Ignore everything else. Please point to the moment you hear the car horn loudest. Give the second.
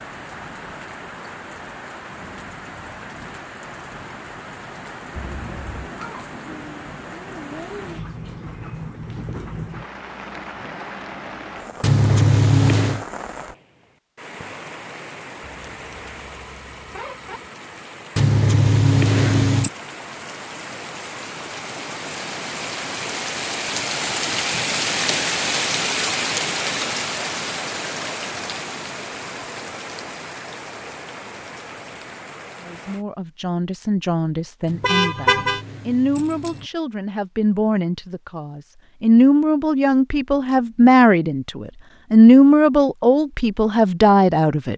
35 s.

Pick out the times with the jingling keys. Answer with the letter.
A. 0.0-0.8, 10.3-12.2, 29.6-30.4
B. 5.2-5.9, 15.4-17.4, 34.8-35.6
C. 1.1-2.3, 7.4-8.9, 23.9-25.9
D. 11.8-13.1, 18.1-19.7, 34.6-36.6
D.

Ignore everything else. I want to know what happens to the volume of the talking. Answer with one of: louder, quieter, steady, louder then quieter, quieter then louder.
louder.